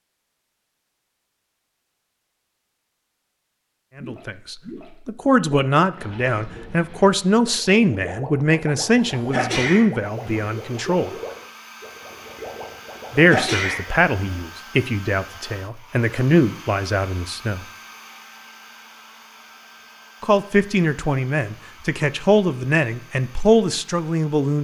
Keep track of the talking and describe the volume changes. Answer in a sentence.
The volume of the talking stays about the same.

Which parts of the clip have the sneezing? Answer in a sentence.
The sneezing can be heard from 9.3 to 10.4 s and from 13.1 to 14.4 s.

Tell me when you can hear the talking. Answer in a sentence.
You can hear the talking from 4.0 to 11.1 s, from 13.1 to 17.6 s and from 20.2 to 24.5 s.